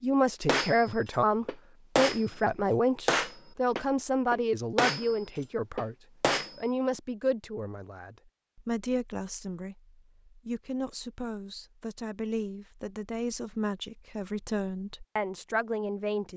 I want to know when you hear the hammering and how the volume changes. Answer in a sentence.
The hammering can be heard from 0.5 to 6.5 s, getting louder then quieter.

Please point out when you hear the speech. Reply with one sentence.
The speech can be heard from 0.0 to 6.0 s and from 6.5 to 16.3 s.